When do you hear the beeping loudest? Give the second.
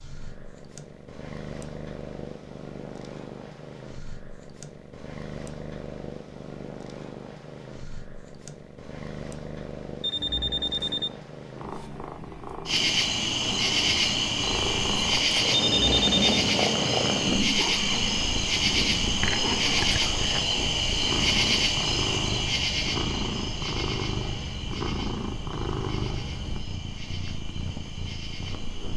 16 s.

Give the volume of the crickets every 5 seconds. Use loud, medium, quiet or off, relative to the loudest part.
off, off, loud, loud, loud, quiet.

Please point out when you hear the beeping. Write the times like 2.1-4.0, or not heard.
10.0-11.1, 15.6-16.4.